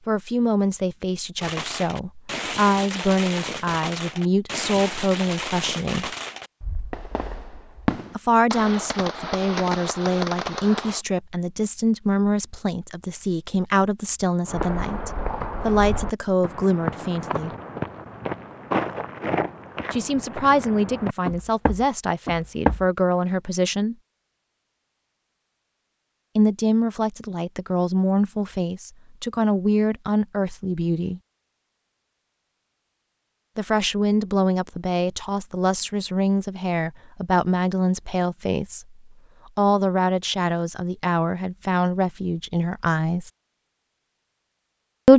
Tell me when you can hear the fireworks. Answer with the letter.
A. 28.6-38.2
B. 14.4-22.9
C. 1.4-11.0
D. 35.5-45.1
C.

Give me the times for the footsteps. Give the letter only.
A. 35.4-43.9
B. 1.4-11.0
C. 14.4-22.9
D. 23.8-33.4
C.